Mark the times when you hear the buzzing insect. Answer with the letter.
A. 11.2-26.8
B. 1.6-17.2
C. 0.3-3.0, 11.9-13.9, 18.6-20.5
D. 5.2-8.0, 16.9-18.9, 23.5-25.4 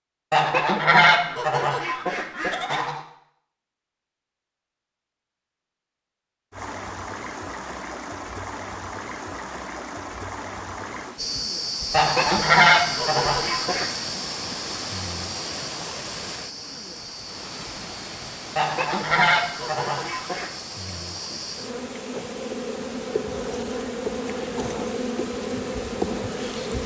A.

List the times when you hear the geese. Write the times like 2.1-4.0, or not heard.
0.3-3.0, 11.9-13.9, 18.6-20.5.